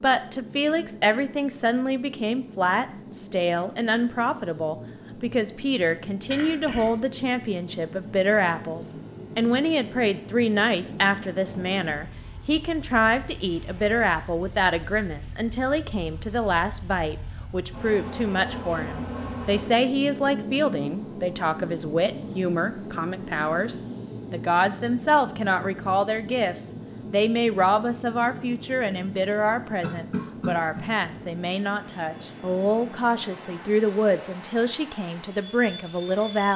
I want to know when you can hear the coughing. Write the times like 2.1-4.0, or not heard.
6.3-7.0, 29.8-30.9.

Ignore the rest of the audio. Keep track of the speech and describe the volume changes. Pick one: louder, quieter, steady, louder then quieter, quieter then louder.
steady.